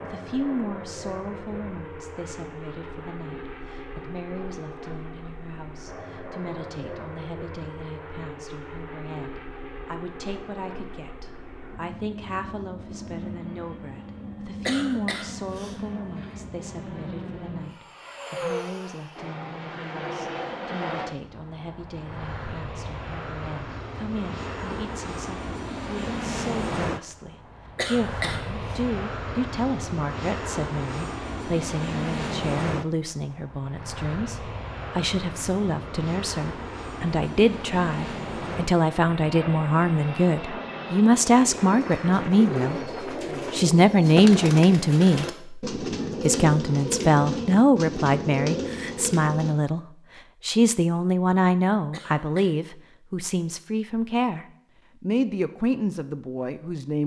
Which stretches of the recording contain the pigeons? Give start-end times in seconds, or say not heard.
41.5-49.5.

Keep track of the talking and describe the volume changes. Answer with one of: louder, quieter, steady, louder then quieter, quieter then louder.
louder.